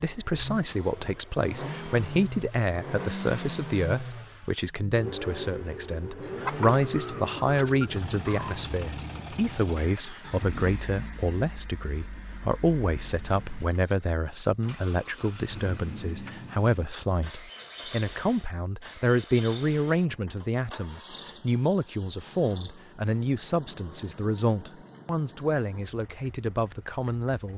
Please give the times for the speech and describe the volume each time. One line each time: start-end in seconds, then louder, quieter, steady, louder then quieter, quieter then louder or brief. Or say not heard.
0.0-27.5 steady.